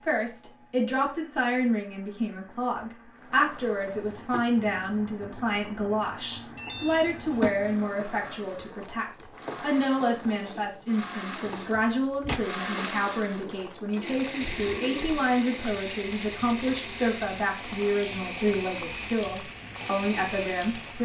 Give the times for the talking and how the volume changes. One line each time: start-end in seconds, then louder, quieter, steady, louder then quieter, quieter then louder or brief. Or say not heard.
0.0-21.0 steady.